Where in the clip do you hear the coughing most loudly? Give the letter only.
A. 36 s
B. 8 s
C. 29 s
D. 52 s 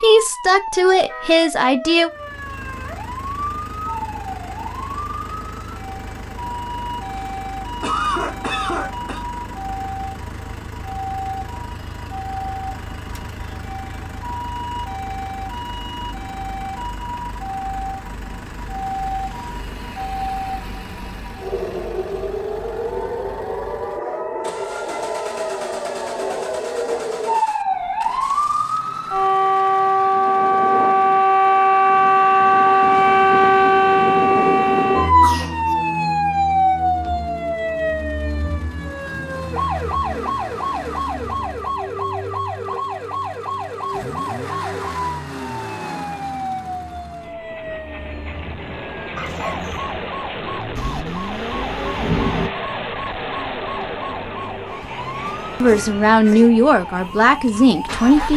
B.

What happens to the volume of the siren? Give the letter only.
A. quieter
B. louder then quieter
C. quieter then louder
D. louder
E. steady
B.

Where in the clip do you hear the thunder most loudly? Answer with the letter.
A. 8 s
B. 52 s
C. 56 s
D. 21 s
B.